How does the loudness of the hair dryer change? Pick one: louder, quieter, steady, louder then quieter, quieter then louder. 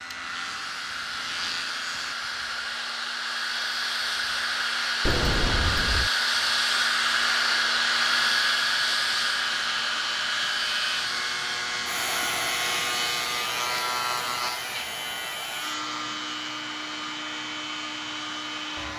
louder then quieter.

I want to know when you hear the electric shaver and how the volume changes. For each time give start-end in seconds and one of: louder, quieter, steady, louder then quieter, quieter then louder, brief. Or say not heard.
0.0-2.1 brief
7.8-18.9 louder then quieter.